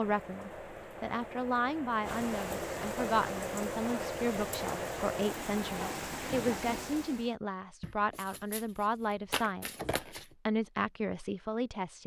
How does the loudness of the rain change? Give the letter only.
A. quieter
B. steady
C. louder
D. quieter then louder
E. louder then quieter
C.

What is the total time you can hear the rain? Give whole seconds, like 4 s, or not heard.
7 s.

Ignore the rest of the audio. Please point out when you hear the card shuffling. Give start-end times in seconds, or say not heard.
7.8-10.3.